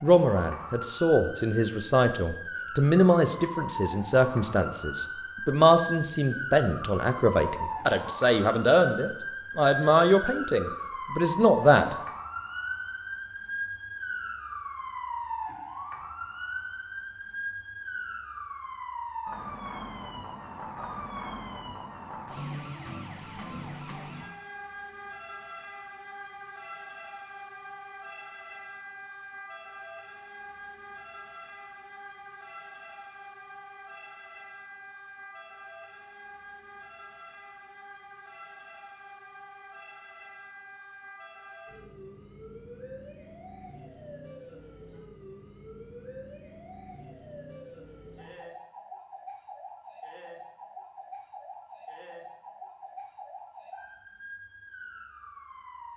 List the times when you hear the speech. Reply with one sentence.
The speech can be heard from 0.0 to 11.9 s.